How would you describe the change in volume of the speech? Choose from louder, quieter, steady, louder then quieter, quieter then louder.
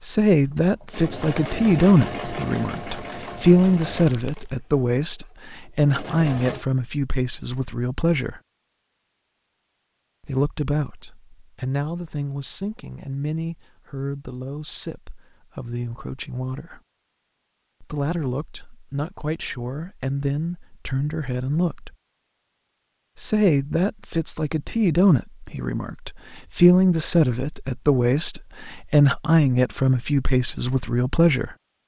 quieter then louder.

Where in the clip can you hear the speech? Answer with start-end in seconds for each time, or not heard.
0.0-8.4, 10.2-16.8, 17.8-21.9, 23.1-31.6.